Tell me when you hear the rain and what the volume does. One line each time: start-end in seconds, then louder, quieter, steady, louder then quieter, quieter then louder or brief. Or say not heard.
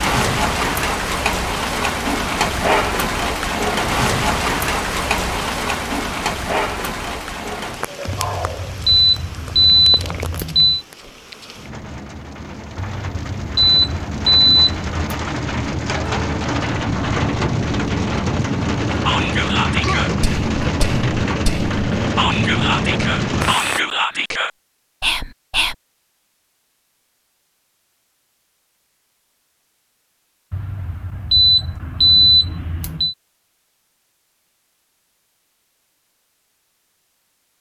0.0-23.8 quieter then louder.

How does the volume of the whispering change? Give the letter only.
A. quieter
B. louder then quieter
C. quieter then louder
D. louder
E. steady
C.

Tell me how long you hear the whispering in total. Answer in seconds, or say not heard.
7 s.